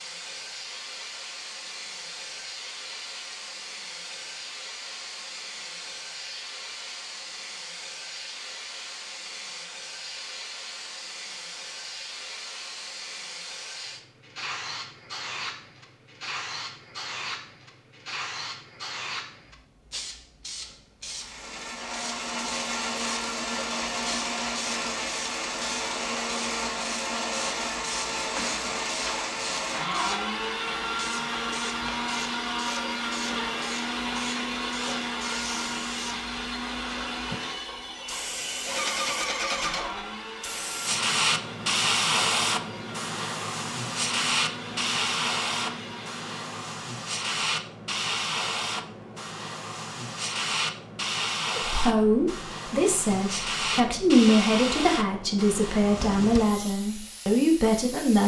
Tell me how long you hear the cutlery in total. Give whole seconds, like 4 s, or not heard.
not heard.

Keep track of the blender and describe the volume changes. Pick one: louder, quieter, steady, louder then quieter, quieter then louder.
quieter.